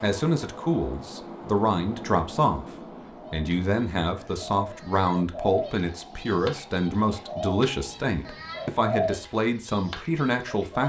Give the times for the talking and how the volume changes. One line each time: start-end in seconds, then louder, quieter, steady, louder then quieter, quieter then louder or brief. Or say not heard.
0.0-2.6 brief
3.3-10.8 steady.